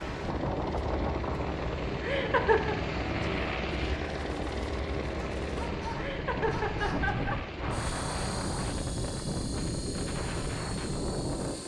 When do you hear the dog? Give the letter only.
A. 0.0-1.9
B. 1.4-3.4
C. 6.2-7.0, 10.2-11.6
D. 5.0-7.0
D.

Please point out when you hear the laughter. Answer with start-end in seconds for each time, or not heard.
2.0-2.8, 6.0-7.3.